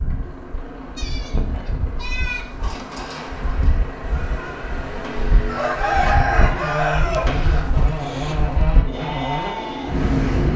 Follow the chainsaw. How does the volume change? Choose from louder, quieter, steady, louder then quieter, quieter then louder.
louder.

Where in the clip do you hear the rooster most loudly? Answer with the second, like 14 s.
6 s.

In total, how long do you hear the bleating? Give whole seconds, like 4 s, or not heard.
9 s.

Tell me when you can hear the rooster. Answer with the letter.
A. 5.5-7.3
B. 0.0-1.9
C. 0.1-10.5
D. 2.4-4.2
A.